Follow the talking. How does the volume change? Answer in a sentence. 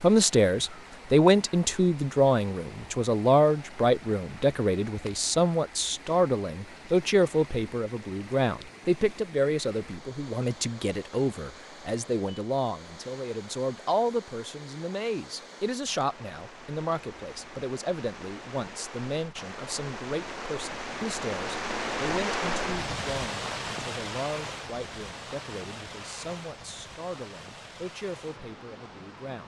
The volume of the talking goes down.